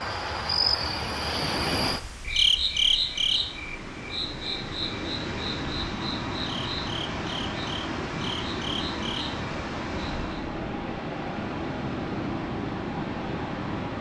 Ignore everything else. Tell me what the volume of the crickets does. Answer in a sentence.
The volume of the crickets goes down.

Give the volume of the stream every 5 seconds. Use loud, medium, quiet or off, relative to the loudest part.
medium, loud, loud.